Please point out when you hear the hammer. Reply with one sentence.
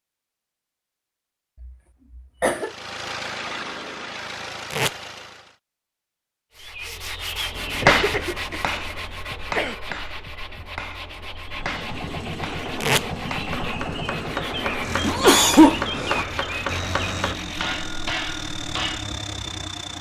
The hammer can be heard from 7.5 to 19.1 s.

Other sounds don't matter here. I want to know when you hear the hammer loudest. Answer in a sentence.
The volume of the hammer peaks at 8 seconds.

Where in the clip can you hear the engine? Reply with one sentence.
The engine can be heard from 2.5 to 5.5 s and from 11.4 to 19.9 s.